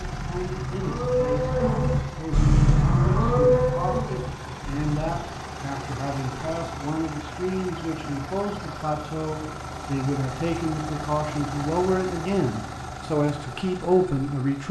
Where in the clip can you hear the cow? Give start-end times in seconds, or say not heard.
0.0-5.2.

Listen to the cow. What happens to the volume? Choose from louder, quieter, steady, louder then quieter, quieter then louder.
louder then quieter.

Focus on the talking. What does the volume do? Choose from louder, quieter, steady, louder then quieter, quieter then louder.
louder.